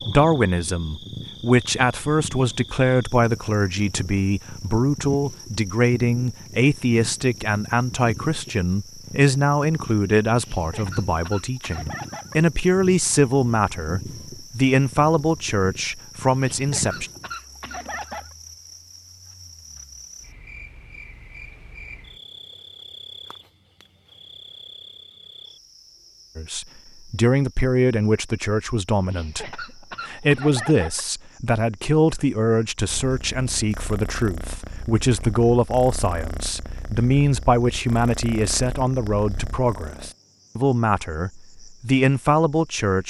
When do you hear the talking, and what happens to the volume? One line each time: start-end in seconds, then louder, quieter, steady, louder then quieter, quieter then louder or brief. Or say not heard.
0.1-17.1 steady
26.4-43.0 steady.